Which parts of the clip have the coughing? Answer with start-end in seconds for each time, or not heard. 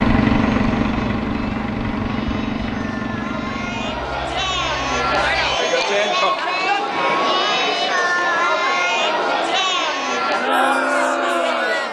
not heard.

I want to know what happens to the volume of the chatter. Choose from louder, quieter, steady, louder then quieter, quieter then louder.
louder.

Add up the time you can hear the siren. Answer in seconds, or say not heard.
not heard.